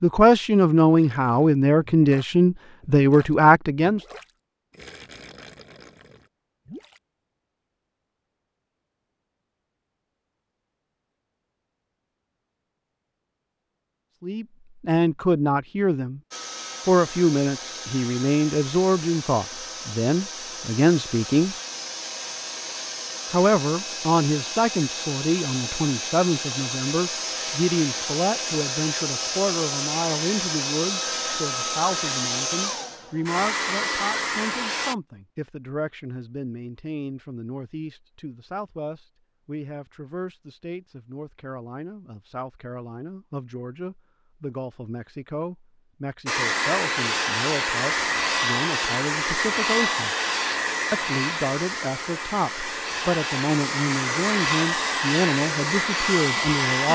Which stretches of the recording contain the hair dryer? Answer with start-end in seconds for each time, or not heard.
16.3-35.0, 46.2-56.8.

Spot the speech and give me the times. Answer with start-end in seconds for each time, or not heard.
0.0-4.0, 14.2-16.2, 16.9-21.6, 23.3-50.1, 50.9-56.8.